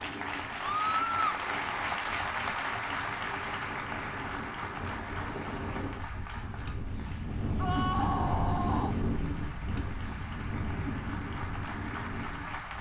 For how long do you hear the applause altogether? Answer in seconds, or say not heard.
13 s.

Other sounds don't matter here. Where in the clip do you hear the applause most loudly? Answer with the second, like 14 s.
2 s.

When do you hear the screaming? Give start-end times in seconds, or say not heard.
0.6-1.4, 7.5-8.9.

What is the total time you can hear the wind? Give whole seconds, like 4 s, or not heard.
13 s.